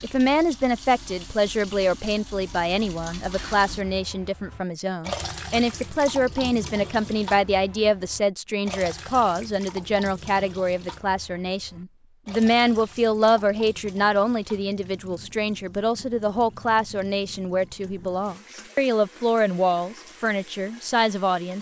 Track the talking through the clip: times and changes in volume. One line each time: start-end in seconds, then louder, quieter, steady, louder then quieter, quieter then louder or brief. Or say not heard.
0.0-21.5 steady.